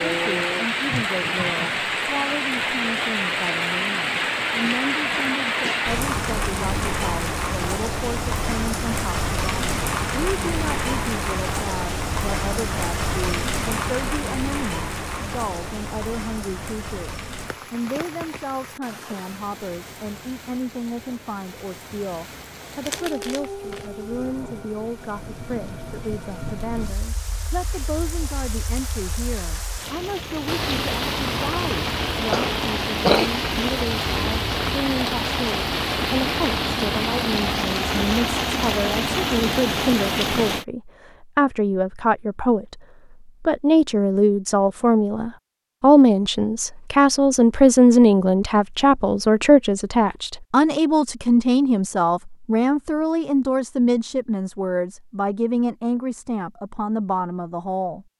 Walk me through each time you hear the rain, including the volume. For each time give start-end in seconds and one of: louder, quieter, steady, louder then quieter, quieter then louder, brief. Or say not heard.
0.0-40.6 quieter then louder.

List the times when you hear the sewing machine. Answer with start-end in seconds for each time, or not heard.
not heard.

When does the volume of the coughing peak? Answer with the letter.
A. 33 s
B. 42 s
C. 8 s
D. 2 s
A.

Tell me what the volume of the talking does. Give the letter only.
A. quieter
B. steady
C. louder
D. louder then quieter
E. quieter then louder
C.